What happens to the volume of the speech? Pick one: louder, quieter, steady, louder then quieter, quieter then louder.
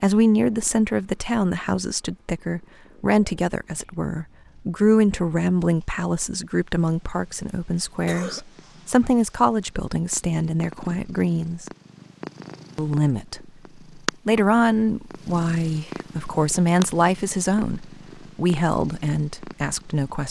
steady.